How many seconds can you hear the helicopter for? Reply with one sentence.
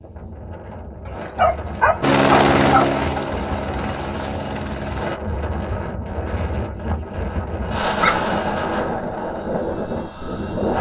You can hear the helicopter for 3 seconds altogether.